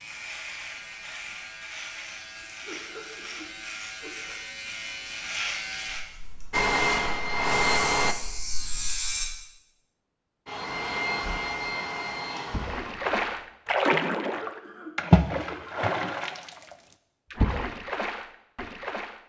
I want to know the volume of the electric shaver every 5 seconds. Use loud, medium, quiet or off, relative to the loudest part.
medium, loud, off, off.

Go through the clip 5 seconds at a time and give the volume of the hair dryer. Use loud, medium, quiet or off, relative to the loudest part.
off, loud, medium, off.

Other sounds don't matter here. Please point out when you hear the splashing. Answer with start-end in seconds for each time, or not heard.
12.5-19.2.